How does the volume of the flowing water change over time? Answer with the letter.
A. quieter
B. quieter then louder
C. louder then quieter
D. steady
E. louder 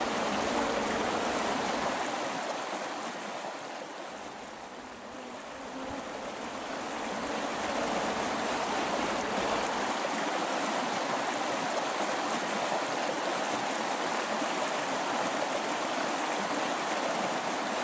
B.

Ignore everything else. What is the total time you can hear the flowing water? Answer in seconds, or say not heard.
18 s.